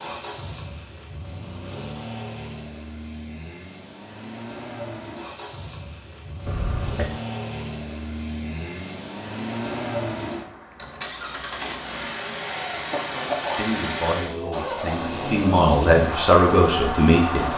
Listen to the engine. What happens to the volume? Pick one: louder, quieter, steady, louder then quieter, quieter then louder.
louder.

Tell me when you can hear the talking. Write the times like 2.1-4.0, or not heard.
13.6-17.5.